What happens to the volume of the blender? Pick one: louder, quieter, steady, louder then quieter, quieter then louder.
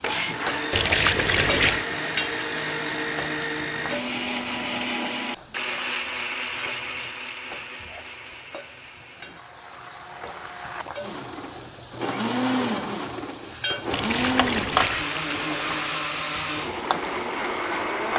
quieter then louder.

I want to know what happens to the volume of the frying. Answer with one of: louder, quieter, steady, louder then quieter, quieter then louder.
quieter then louder.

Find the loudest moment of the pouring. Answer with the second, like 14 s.
1 s.